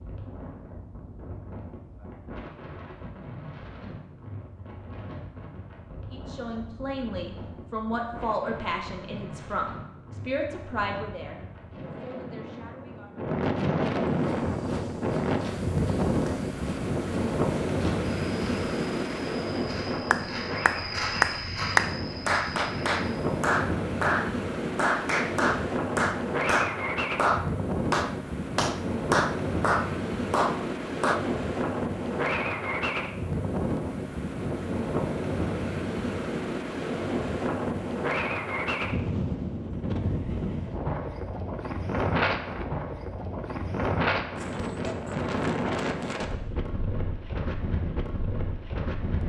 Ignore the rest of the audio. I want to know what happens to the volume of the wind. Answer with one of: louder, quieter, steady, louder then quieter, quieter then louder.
louder.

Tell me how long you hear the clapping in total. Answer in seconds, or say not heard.
11 s.